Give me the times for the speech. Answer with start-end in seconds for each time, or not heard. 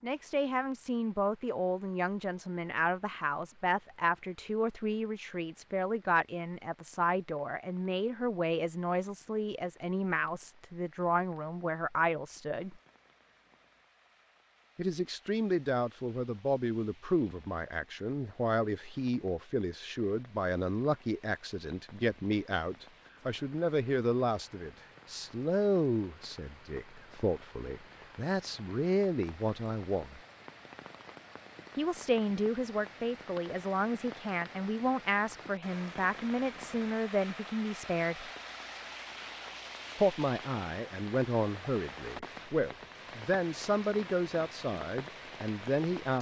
0.0-12.8, 14.8-30.2, 31.8-38.3, 40.0-46.1.